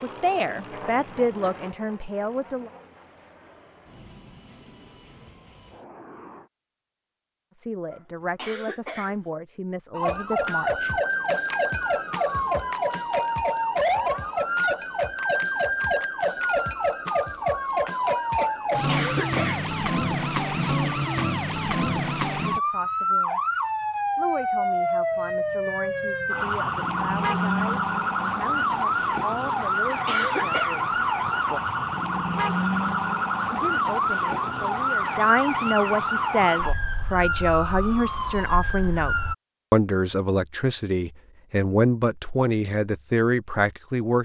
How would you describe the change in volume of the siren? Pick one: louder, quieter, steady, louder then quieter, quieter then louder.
steady.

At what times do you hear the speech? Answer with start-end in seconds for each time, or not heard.
0.0-2.7, 7.5-10.9, 22.4-23.4, 24.1-31.0, 33.5-44.2.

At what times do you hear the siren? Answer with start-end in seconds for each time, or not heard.
9.9-39.4.